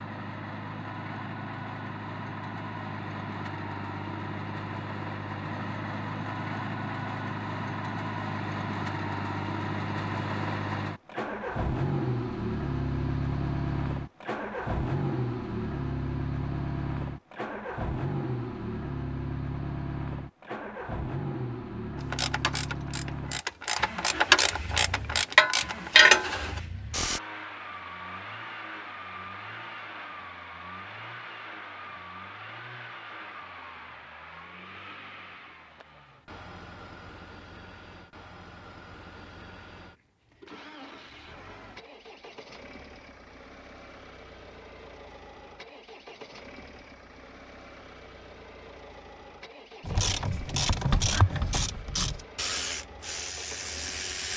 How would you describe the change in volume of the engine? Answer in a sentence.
The loudness of the engine goes down.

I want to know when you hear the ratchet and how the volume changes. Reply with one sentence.
You can hear the ratchet from 21.9 to 27.2 s, getting louder; and from 49.9 to 54.3 s, getting quieter.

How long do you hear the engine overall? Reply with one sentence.
The engine can be heard for 54 seconds in total.